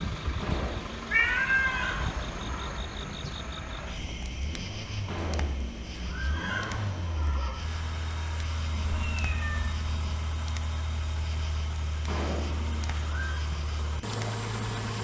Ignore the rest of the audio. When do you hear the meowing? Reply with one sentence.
The meowing can be heard from 1.1 to 1.9 s and from 8.7 to 10.2 s.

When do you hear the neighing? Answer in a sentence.
The neighing can be heard from 0.4 to 2.9 s, from 5.0 to 7.7 s and from 12.1 to 13.4 s.